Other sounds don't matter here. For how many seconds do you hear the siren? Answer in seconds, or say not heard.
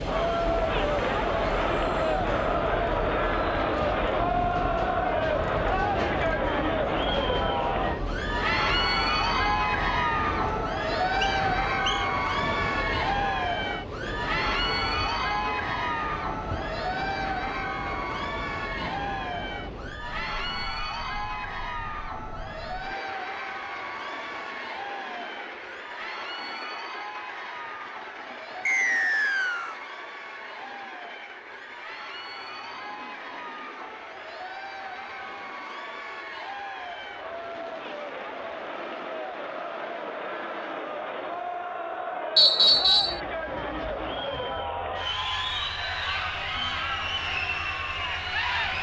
not heard.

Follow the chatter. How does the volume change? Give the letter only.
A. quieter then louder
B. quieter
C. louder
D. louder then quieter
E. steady
A.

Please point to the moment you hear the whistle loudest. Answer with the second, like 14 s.
43 s.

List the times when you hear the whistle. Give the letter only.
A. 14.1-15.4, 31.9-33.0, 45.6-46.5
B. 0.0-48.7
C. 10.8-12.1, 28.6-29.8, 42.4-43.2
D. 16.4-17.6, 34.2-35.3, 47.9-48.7
C.